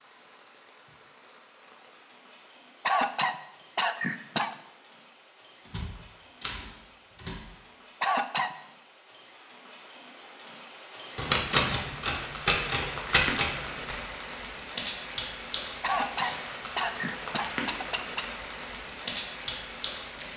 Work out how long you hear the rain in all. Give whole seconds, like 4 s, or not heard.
20 s.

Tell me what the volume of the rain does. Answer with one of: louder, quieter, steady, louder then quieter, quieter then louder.
louder.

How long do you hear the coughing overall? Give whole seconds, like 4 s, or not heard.
5 s.